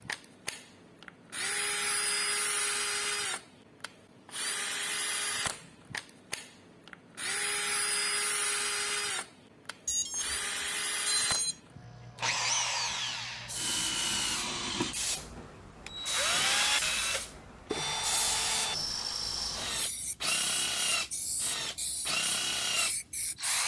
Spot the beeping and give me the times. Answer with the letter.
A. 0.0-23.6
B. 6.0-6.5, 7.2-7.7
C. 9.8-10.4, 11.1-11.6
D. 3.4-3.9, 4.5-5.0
C.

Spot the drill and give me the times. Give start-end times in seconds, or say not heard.
0.0-23.6.